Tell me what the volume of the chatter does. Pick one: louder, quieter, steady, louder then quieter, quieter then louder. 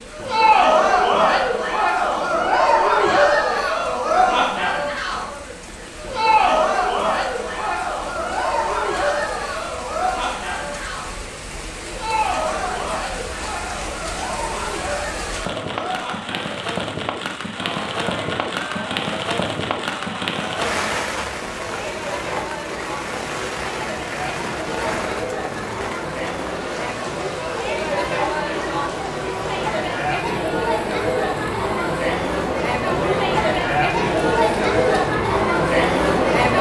quieter then louder.